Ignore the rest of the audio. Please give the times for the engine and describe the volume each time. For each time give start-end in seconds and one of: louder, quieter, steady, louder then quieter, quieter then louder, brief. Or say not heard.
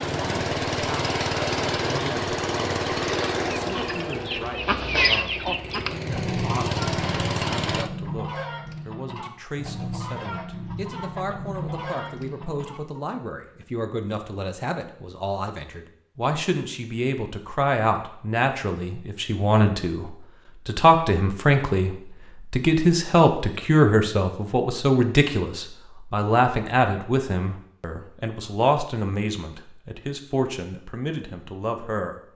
0.0-7.9 quieter then louder.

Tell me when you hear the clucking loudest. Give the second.
5 s.